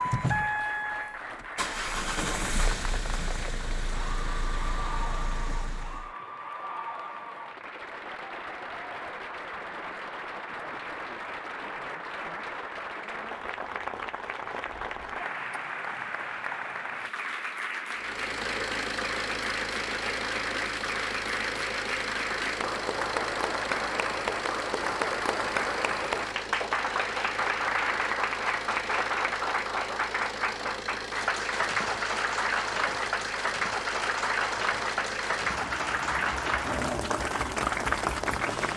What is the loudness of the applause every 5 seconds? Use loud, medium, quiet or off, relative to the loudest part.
medium, medium, medium, medium, loud, loud, loud, loud.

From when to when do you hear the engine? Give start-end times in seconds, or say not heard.
0.0-6.1, 17.9-38.7.